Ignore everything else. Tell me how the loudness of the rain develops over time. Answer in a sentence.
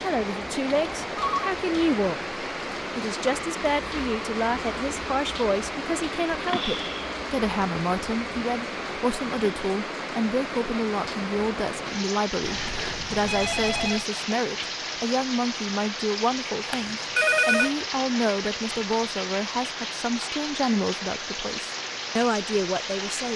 The volume of the rain stays about the same.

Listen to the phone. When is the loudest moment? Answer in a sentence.
The loudest moment of the phone is at 17 seconds.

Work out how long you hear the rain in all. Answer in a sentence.
The rain can be heard for 23 seconds in total.